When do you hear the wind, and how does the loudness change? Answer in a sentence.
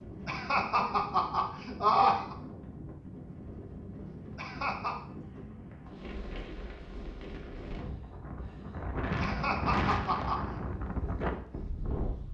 The wind can be heard from 0.0 to 12.2 s, getting louder.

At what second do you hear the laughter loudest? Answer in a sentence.
The volume of the laughter peaks at 2 seconds.